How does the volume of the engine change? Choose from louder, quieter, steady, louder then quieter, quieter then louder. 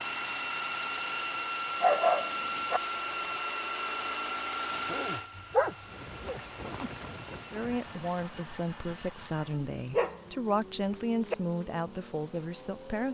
quieter.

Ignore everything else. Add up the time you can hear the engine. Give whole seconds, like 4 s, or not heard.
13 s.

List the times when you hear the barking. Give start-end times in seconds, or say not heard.
1.8-2.8, 4.8-6.9, 9.9-10.7.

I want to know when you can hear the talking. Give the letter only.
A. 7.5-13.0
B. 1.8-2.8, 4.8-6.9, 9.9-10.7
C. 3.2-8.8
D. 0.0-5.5
A.